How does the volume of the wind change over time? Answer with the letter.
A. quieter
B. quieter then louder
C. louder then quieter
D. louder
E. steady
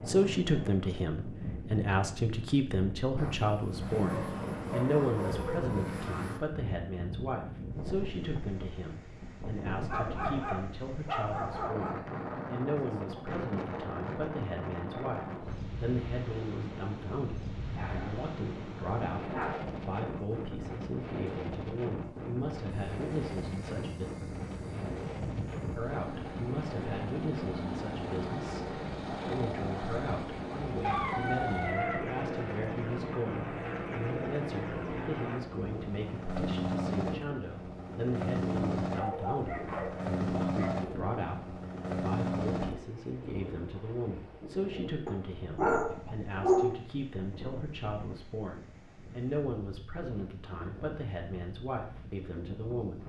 A.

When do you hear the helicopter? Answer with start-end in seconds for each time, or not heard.
3.1-6.4, 22.6-42.8.